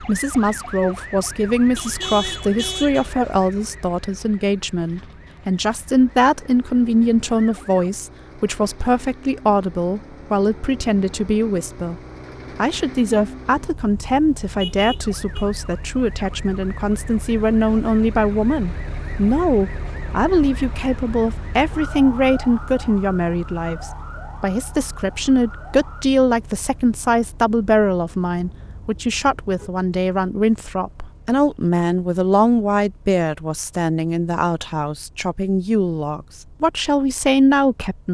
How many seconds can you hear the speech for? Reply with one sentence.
The speech can be heard for 38 seconds in total.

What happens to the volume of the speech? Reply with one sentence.
The volume of the speech stays about the same.